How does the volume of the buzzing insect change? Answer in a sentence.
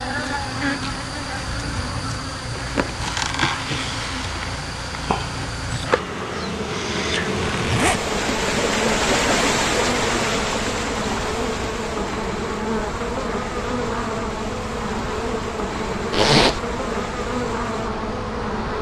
The loudness of the buzzing insect stays about the same.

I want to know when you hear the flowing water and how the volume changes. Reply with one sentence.
You can hear the flowing water from 0.1 to 18.7 s, getting louder then quieter.